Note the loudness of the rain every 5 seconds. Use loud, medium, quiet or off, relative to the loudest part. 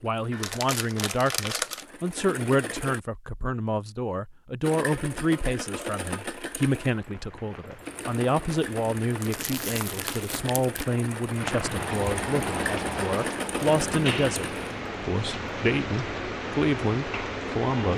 off, quiet, loud, loud.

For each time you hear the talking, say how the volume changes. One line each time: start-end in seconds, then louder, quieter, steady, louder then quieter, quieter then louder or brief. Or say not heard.
0.0-17.9 steady.